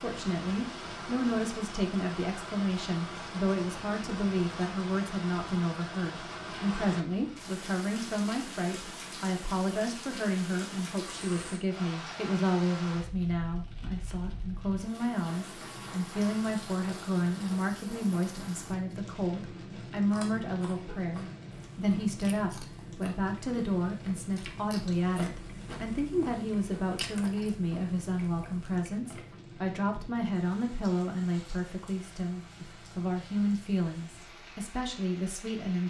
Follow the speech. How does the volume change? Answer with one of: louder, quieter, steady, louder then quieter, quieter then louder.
steady.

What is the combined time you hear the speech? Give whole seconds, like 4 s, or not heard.
36 s.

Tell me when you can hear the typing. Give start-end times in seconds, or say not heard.
not heard.